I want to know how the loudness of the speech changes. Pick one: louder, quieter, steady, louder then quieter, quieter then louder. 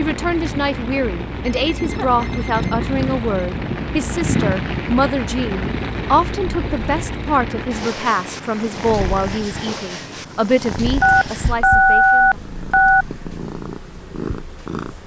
steady.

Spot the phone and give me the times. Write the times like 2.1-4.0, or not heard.
1.5-3.2, 6.5-7.0, 11.0-13.1.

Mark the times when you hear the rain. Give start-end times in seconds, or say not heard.
0.0-9.4.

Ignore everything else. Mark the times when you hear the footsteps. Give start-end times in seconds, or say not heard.
not heard.